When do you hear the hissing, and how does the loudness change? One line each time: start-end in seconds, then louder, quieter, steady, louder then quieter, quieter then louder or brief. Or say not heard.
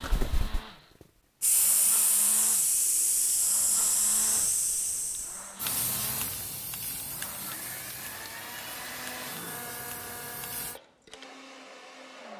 0.0-10.8 quieter.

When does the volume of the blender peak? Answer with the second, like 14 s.
9 s.